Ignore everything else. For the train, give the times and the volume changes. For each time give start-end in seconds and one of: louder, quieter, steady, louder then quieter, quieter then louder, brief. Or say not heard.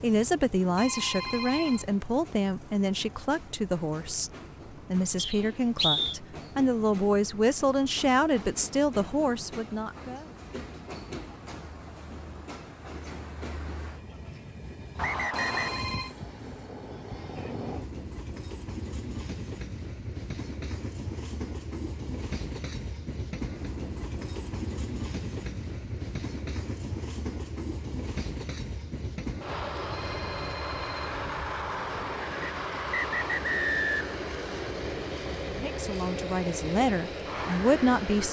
0.0-38.2 louder.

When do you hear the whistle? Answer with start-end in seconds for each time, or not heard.
5.2-6.2, 14.9-15.8, 32.4-34.1.